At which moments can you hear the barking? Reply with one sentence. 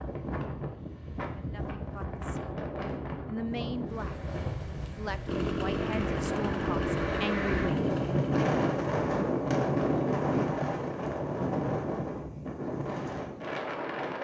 The barking can't be heard in this clip.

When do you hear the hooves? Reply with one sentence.
You can't hear the hooves here.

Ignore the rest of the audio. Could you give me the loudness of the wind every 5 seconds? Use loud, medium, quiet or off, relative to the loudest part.
medium, loud, loud.